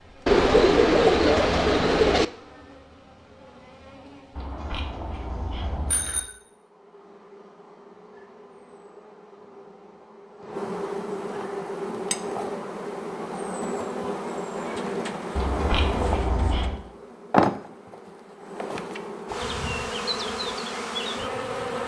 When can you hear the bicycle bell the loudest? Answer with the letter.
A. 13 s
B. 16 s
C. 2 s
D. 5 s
B.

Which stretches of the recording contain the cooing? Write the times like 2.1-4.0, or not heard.
0.2-2.2, 14.6-16.7.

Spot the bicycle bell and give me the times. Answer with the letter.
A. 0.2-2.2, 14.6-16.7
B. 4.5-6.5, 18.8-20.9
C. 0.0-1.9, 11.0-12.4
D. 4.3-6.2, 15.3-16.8
D.